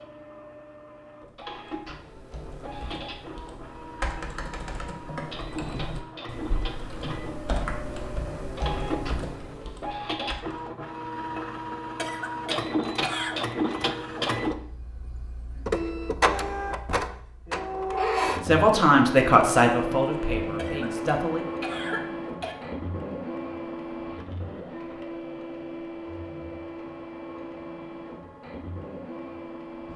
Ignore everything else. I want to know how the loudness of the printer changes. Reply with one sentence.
The volume of the printer goes up, then down.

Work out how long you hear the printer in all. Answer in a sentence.
You can hear the printer for 30 seconds altogether.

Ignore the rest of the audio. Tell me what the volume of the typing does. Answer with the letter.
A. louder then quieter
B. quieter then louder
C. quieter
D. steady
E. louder
E.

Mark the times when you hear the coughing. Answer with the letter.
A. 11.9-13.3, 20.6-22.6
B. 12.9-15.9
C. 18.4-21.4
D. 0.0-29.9
A.